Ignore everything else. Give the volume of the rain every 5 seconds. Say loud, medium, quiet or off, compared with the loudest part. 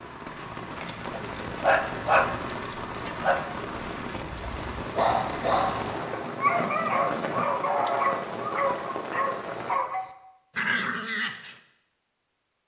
loud, loud, off.